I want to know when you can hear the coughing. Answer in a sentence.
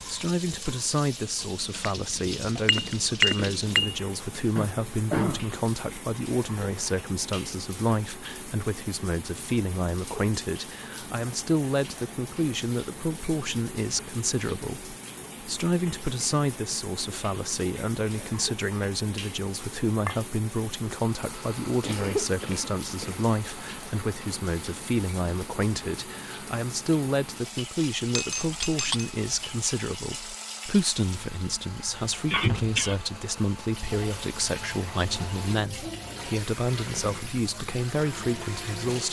The coughing can be heard from 4.5 to 5.5 s, from 21.8 to 23.2 s and from 32.2 to 33.0 s.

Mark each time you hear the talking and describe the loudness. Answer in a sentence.
The talking can be heard from 0.1 to 39.0 s, at a steady volume.